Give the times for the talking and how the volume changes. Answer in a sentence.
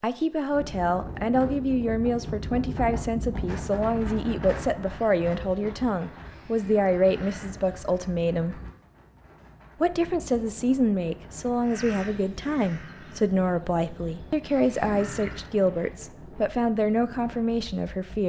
The talking can be heard from 0.0 to 8.6 s, at a steady volume; and from 9.8 to 18.2 s, at a steady volume.